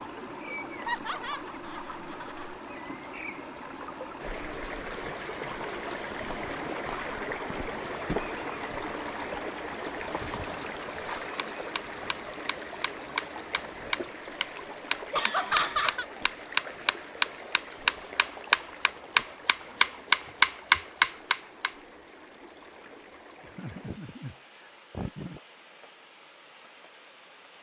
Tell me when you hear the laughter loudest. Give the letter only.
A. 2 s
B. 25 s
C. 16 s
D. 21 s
C.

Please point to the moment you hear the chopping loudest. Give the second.
21 s.